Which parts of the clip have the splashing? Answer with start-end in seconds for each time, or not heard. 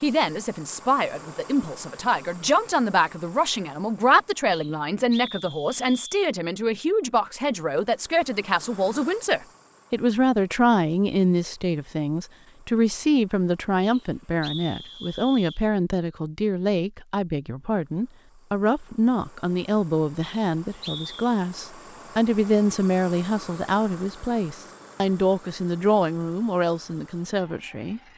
not heard.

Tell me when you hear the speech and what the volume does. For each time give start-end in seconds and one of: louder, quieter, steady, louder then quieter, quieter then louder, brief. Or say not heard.
0.0-28.0 steady.